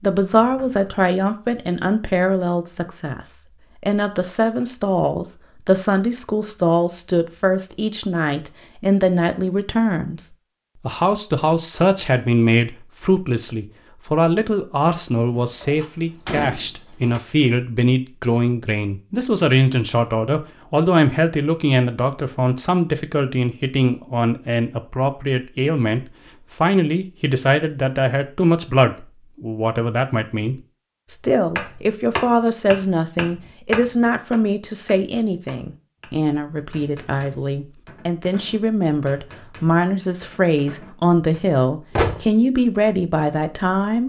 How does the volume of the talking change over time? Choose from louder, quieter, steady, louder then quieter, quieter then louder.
steady.